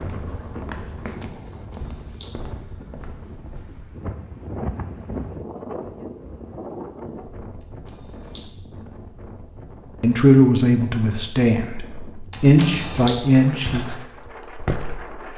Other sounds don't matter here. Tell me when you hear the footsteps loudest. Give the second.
15 s.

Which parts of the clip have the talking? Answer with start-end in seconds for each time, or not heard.
10.0-13.8.